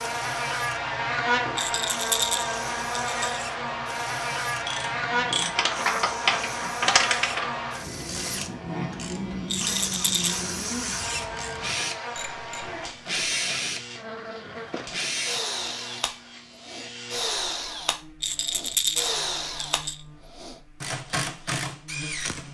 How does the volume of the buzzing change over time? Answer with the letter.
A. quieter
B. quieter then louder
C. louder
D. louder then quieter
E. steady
A.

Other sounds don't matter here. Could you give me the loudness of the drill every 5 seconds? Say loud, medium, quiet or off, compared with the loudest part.
medium, medium, loud, loud, loud.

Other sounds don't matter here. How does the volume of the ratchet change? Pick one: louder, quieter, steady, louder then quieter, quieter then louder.
quieter.